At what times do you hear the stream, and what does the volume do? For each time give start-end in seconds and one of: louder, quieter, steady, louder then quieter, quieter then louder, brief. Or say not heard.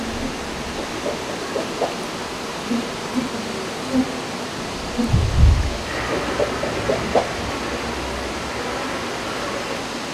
0.0-10.0 steady.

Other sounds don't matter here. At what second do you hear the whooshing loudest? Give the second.
7 s.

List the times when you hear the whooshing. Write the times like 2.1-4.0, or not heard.
0.8-2.0, 6.1-7.3.